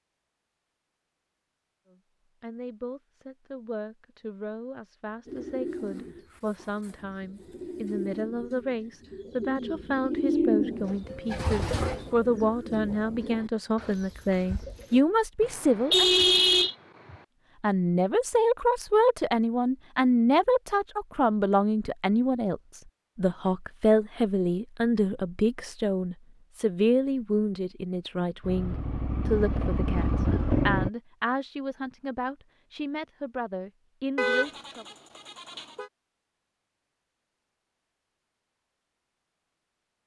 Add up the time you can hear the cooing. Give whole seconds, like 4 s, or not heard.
10 s.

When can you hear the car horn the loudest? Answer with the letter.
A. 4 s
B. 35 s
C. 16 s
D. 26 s
C.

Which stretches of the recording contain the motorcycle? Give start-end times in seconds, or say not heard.
28.4-30.9.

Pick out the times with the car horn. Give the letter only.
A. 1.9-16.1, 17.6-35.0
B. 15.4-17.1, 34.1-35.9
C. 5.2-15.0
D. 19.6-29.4
B.